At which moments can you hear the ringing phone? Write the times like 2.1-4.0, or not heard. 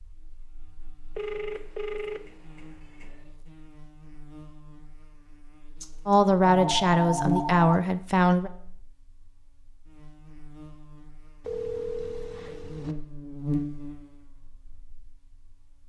1.1-3.1, 5.8-7.8, 11.4-12.9.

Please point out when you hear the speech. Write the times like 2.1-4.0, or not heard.
6.0-8.5.